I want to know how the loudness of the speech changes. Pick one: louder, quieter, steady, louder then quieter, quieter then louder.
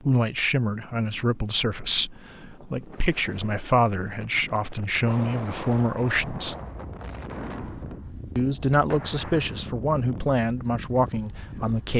steady.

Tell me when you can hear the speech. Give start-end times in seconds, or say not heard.
0.0-6.5, 8.3-11.9.